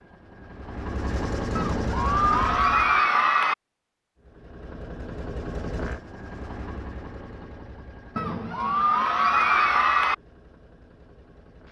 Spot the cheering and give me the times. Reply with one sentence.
You can hear the cheering from 1.6 to 3.5 s and from 8.2 to 10.2 s.